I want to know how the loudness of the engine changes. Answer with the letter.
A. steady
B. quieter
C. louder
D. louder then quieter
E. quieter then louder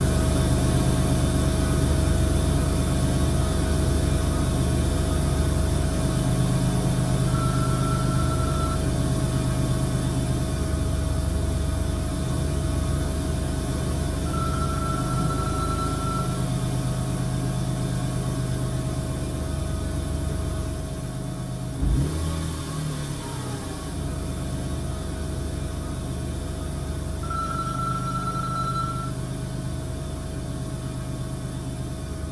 B.